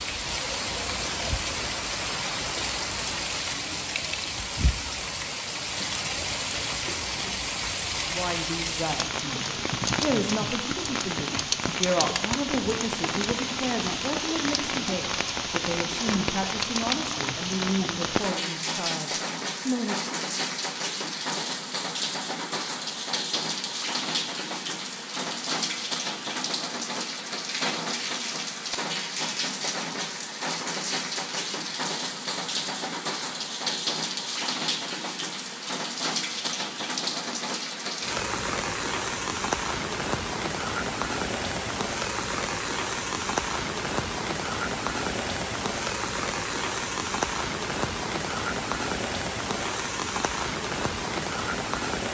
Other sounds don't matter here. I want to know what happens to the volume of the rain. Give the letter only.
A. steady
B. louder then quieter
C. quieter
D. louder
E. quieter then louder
A.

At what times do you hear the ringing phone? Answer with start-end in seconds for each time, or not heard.
not heard.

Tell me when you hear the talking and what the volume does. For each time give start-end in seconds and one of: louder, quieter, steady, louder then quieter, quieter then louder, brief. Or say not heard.
8.0-20.1 steady.